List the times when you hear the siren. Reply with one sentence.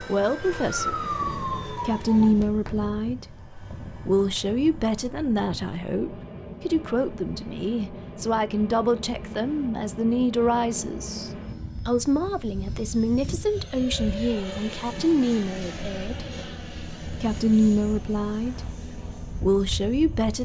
The siren can be heard from 0.0 to 2.5 s.